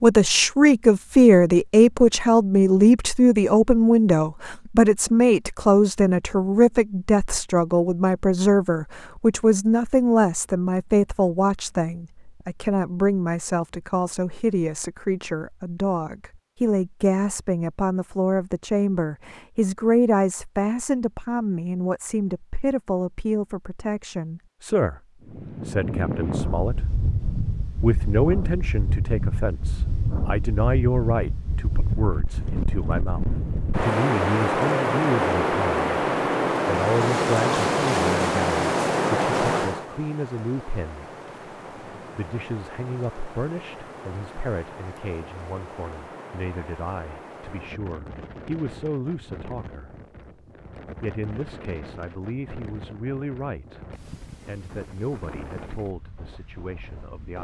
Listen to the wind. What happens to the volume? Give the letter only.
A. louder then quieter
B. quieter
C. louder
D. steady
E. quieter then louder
A.